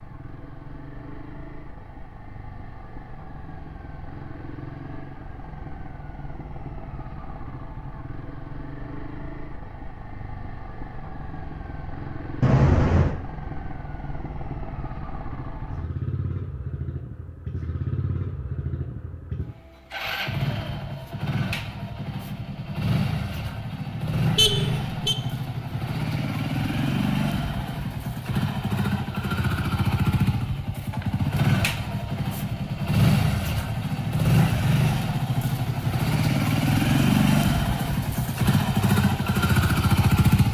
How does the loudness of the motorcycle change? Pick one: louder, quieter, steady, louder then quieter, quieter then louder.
louder.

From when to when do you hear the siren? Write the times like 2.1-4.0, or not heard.
not heard.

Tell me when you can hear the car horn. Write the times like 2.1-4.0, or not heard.
12.4-13.2, 24.4-25.1.